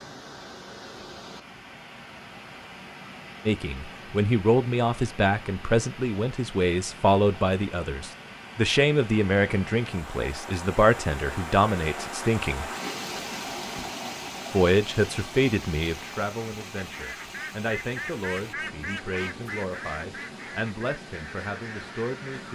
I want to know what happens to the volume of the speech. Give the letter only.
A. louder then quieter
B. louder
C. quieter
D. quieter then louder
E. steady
C.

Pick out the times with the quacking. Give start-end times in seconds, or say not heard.
16.8-22.5.